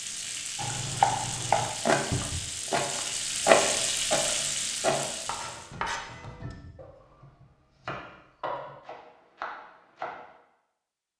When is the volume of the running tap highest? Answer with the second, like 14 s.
4 s.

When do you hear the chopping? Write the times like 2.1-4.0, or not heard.
0.6-10.2.